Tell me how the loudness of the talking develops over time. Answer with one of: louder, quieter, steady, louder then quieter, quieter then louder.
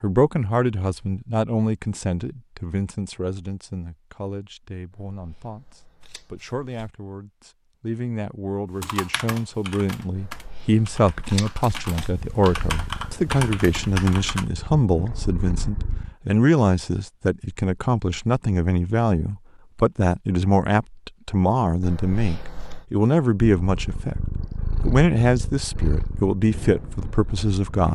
louder.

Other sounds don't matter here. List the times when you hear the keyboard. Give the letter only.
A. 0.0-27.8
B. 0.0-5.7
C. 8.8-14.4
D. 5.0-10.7
C.